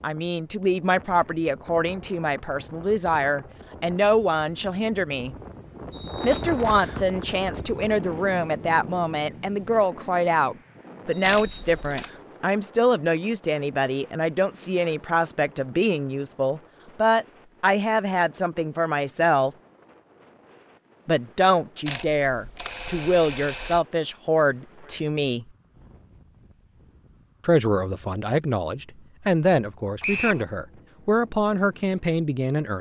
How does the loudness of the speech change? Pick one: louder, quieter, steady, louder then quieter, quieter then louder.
steady.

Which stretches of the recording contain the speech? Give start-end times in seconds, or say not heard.
0.0-5.3, 6.2-19.6, 21.1-25.4, 27.4-32.7.